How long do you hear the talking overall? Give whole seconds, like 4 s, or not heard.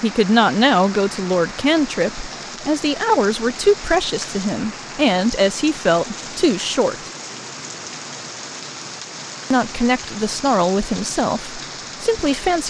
10 s.